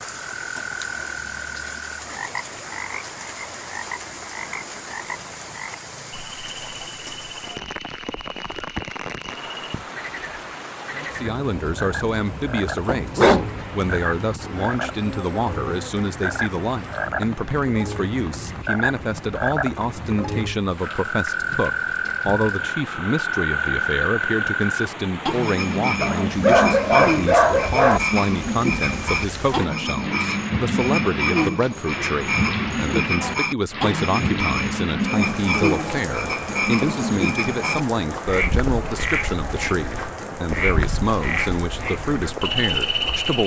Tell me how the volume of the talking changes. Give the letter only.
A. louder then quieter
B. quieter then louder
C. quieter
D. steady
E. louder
D.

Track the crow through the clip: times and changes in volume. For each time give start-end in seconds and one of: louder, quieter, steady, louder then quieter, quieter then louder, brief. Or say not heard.
not heard.